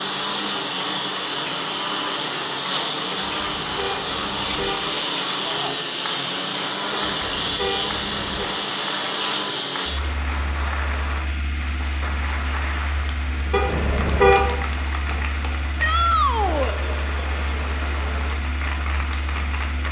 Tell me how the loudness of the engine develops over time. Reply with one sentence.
The volume of the engine goes down.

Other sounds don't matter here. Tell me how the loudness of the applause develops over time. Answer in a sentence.
The loudness of the applause stays about the same.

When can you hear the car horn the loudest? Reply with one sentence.
The volume of the car horn peaks at 14 seconds.